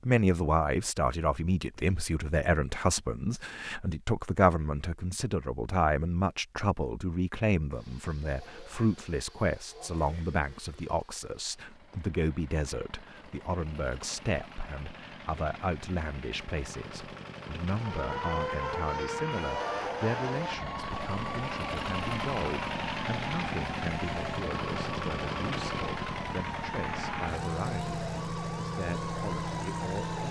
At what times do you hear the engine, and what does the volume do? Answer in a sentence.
The engine can be heard from 7.7 to 30.2 s, getting louder.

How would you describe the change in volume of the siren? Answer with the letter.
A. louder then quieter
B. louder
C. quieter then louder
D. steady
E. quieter
E.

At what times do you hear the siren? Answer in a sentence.
The siren can be heard from 17.7 to 30.2 s.